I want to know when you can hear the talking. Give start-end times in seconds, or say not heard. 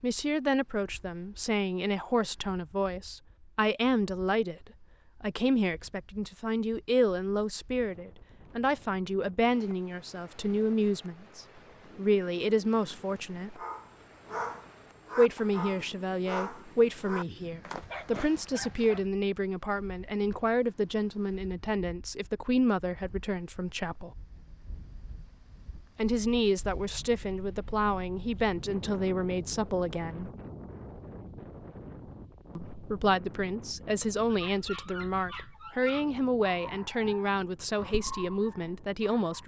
0.0-13.6, 15.2-24.1, 25.9-30.3, 32.5-39.4.